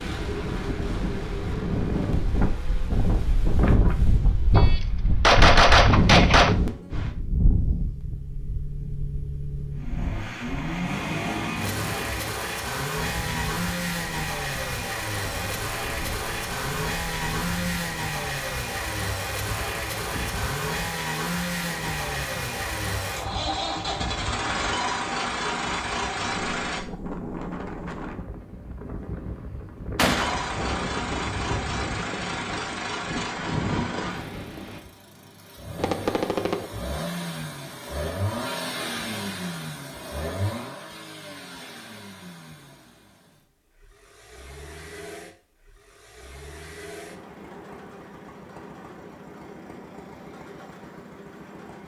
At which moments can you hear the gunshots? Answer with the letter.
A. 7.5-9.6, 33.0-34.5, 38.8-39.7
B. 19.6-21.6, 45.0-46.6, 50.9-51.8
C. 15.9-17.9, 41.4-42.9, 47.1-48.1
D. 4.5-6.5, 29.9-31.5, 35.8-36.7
D.